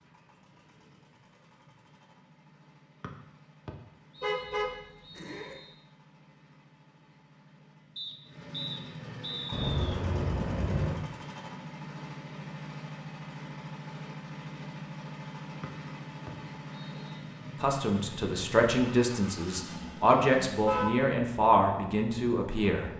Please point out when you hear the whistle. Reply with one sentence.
You can hear the whistle from 3.0 to 5.8 s, from 8.0 to 9.9 s and from 15.6 to 17.2 s.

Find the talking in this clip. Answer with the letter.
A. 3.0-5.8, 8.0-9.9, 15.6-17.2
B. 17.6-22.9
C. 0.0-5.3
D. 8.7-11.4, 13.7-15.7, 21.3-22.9
B.